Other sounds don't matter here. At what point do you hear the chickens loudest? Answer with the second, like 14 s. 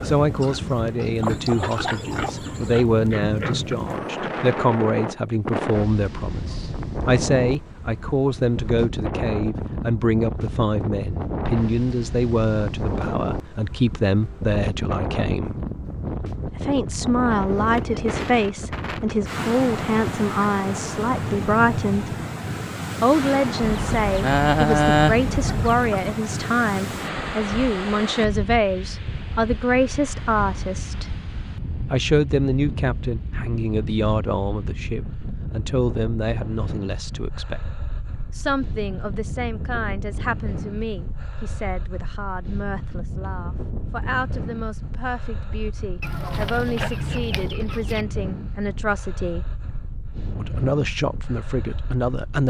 25 s.